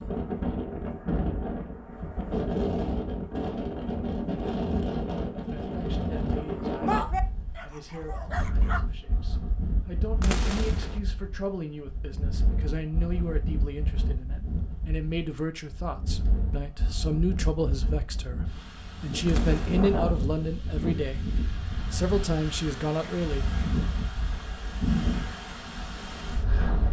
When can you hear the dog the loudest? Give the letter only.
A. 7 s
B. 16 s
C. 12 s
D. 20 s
A.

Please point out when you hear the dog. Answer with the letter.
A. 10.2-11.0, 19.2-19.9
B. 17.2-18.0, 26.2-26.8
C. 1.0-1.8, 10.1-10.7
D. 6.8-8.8
D.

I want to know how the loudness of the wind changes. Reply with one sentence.
The loudness of the wind goes down, then up.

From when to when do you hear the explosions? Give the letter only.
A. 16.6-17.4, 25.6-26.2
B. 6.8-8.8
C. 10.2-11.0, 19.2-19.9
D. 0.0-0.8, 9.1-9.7
C.